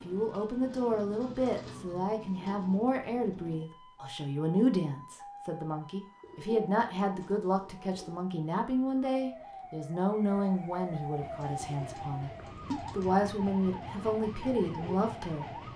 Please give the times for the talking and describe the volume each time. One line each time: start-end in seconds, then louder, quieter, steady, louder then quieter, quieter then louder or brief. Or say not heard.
0.0-15.7 steady.